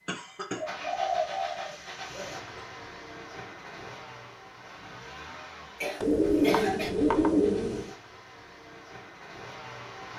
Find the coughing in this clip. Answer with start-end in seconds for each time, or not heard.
0.1-0.6, 5.8-6.9.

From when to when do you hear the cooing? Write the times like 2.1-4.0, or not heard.
0.5-2.5, 6.0-7.9.